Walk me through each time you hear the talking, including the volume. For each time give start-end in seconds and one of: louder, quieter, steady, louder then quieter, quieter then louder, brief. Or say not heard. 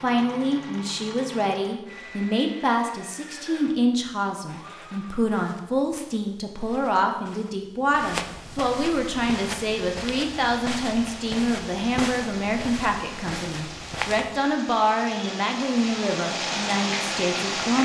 0.0-17.8 steady.